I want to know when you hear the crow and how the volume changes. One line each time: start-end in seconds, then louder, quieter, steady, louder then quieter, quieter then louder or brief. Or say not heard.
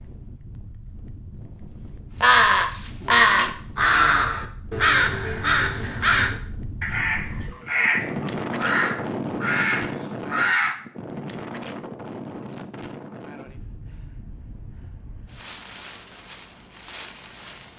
2.2-10.8 quieter.